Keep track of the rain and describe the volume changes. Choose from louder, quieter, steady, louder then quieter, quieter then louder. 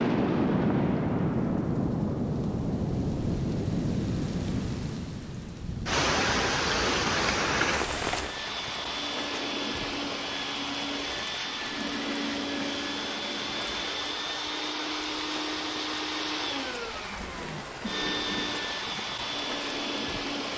quieter.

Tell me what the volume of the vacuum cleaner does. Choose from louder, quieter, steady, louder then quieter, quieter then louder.
steady.